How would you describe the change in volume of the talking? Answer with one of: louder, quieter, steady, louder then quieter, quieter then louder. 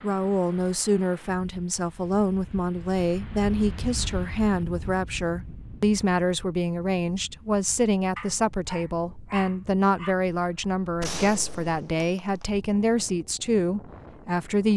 steady.